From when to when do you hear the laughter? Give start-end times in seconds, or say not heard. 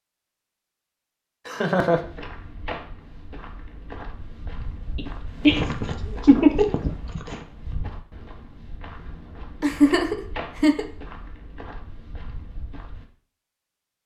1.4-2.0, 5.0-7.4, 9.6-10.8.